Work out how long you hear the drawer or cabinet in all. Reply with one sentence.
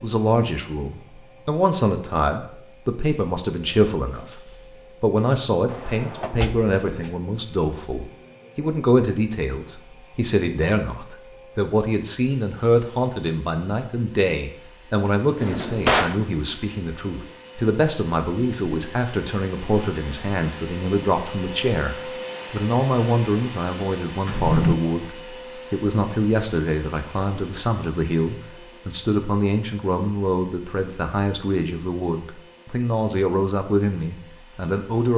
You can hear the drawer or cabinet for 3 seconds altogether.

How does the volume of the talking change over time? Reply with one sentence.
The volume of the talking stays about the same.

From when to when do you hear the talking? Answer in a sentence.
The talking can be heard from 0.0 to 35.1 s.